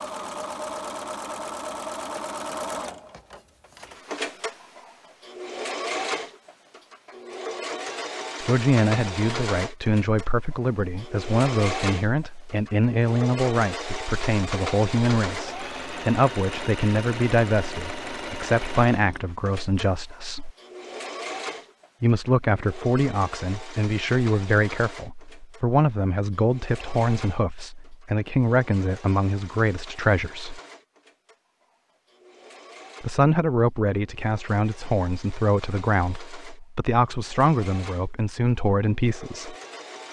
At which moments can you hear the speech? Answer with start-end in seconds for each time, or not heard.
8.4-20.5, 22.0-30.6, 33.0-39.5.